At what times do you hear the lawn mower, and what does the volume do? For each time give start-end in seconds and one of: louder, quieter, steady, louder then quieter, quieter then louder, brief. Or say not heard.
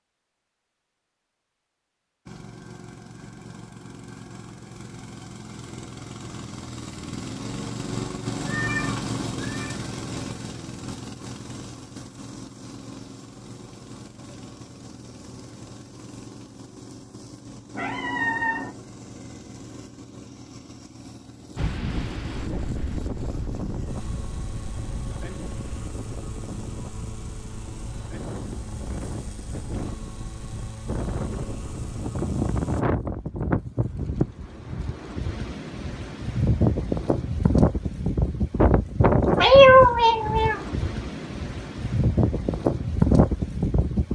2.2-32.9 quieter.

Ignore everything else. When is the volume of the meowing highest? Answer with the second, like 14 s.
40 s.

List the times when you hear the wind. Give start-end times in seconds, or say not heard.
21.6-44.1.